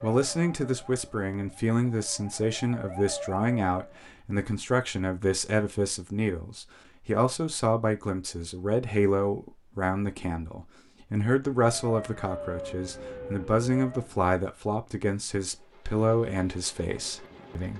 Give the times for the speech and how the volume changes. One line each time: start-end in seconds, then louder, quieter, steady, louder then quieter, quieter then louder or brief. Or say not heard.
0.0-17.7 steady.